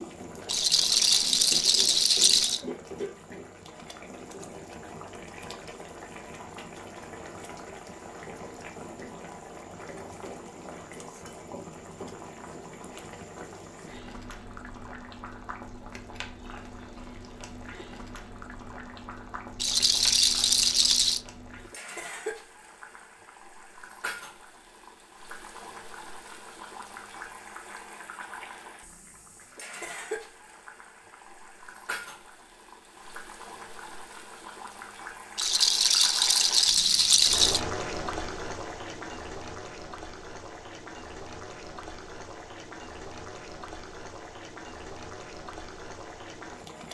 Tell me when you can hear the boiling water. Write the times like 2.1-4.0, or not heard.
0.0-46.8.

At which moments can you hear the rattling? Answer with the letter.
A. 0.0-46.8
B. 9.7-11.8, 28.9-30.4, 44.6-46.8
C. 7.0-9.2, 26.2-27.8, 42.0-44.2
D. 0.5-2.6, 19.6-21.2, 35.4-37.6
D.